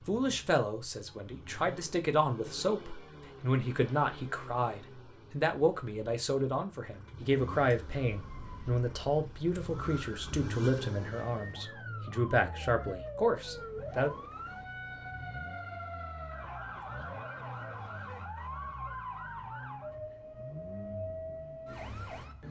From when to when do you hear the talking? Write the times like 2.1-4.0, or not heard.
0.1-14.1.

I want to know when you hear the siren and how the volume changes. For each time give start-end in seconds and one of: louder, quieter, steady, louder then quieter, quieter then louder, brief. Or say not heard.
7.8-22.4 louder.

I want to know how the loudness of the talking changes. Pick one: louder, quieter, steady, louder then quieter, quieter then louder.
steady.